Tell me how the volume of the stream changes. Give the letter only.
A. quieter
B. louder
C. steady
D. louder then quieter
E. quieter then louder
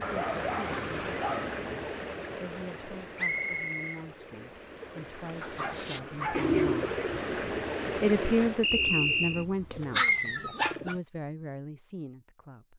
E.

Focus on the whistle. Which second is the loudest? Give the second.
9 s.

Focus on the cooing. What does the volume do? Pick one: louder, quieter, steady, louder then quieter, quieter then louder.
quieter.